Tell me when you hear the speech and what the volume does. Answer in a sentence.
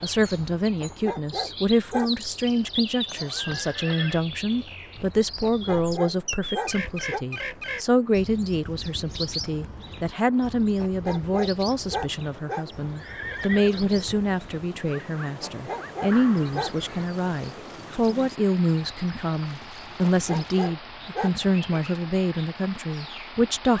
The speech can be heard from 0.0 to 23.7 s, at a steady volume.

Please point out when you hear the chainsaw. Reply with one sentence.
You can't hear the chainsaw here.